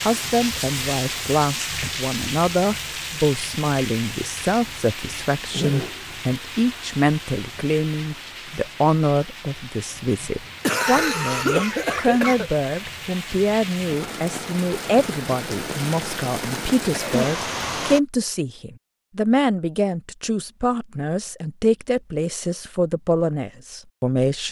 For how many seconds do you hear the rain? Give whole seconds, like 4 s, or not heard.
18 s.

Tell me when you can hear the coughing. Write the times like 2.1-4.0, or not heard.
5.5-6.0, 10.1-12.5, 16.9-17.3.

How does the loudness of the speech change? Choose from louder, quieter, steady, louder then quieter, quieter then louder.
steady.